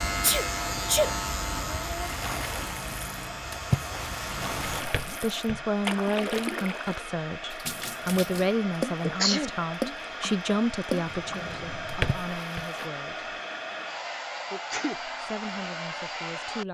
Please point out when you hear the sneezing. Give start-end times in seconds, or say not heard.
0.2-2.1, 9.0-9.5, 14.5-15.0.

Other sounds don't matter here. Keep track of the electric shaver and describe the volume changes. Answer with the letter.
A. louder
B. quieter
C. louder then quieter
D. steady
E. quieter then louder
B.